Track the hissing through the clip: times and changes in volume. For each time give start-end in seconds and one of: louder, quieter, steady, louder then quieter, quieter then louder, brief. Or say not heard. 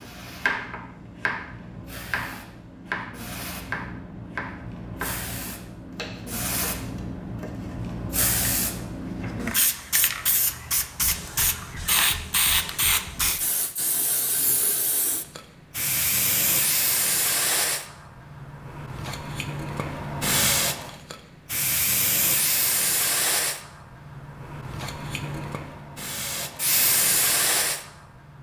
0.0-27.9 louder.